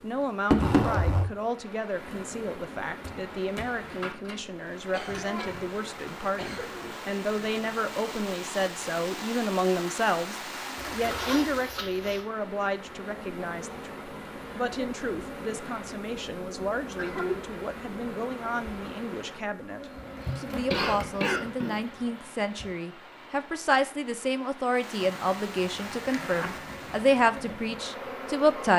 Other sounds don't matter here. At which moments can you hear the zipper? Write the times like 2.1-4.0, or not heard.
0.5-1.3, 10.8-12.2, 25.0-26.5.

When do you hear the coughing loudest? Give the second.
21 s.